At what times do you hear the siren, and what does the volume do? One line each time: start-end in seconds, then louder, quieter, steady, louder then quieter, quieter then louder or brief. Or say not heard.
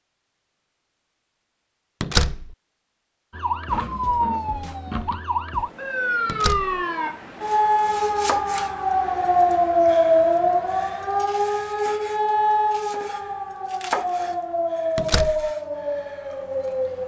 3.3-17.0 louder then quieter.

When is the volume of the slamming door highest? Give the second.
2 s.